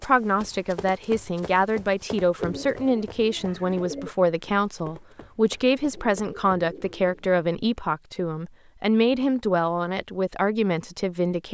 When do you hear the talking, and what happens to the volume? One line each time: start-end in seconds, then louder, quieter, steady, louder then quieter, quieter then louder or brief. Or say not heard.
0.0-11.4 steady.